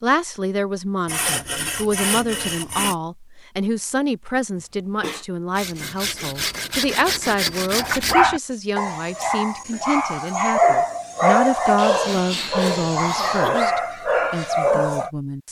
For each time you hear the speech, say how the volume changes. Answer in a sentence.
The speech can be heard from 0.0 to 15.4 s, at a steady volume.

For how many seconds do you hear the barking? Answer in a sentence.
You can hear the barking for 7 seconds altogether.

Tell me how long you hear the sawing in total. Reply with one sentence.
You can hear the sawing for 6 seconds altogether.